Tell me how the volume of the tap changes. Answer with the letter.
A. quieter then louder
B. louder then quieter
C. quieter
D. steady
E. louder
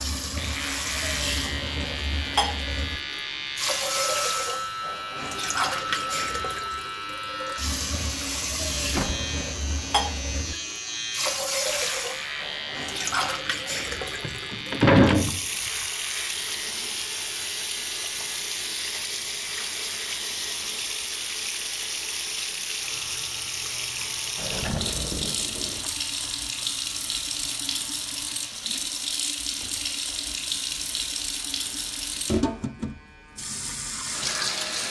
D.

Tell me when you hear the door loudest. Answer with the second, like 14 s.
15 s.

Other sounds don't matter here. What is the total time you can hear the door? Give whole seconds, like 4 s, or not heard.
3 s.